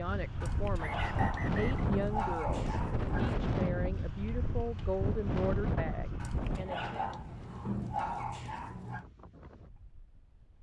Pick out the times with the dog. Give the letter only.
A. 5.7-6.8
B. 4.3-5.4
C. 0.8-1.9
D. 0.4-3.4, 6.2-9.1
D.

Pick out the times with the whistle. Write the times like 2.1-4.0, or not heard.
0.8-1.9.